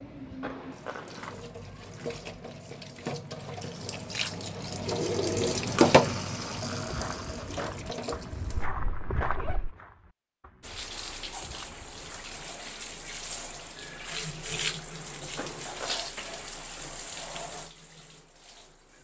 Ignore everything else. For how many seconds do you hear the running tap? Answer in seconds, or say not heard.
17 s.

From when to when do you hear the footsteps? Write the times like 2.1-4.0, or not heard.
6.8-12.3.